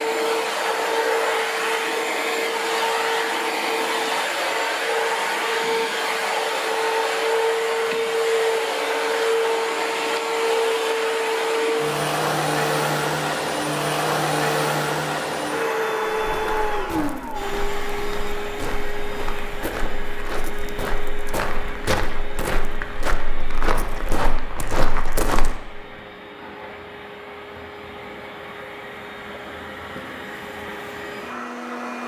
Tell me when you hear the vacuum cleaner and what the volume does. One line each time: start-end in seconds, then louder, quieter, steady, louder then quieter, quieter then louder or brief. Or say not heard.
0.0-32.0 quieter.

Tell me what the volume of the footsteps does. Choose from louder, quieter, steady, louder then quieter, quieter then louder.
louder.